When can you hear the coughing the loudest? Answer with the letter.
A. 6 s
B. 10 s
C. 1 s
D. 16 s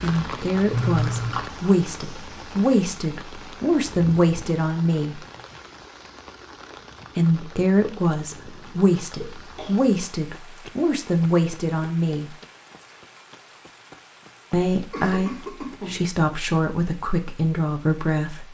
C.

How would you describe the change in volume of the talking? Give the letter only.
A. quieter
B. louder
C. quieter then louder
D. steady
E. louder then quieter
D.